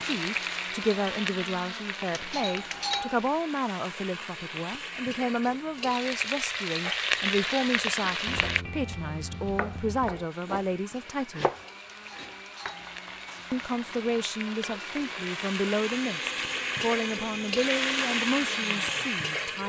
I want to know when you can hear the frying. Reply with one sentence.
You can hear the frying from 0.0 to 8.7 s and from 10.3 to 19.6 s.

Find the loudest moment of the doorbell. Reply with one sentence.
The volume of the doorbell peaks at 3 seconds.